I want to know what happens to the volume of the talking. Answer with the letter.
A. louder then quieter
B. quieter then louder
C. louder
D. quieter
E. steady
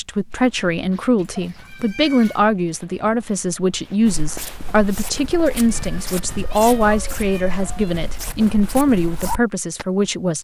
E.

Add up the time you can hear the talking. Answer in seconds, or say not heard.
10 s.